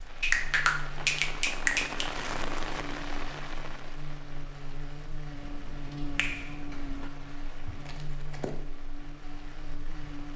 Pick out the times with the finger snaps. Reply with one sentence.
The finger snaps can be heard from 0.2 to 2.1 s and from 5.4 to 7.1 s.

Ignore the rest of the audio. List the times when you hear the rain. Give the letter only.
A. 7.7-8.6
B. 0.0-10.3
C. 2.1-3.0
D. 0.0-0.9
B.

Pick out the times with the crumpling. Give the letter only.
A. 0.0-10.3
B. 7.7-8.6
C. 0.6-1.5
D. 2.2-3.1
B.